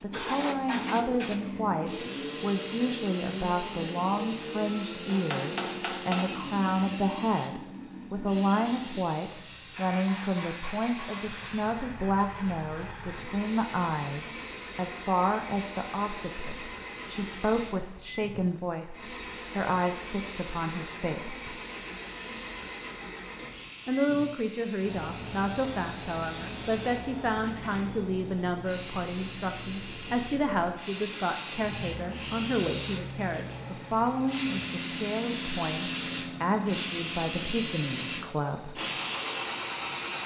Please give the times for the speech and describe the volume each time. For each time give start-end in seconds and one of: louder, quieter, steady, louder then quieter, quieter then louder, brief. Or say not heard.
0.0-21.6 steady
23.9-38.8 steady.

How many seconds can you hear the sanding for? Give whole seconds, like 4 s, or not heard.
not heard.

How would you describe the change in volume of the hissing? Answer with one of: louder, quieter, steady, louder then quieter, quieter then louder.
quieter then louder.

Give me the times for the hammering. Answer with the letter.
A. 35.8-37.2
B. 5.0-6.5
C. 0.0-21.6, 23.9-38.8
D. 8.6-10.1
B.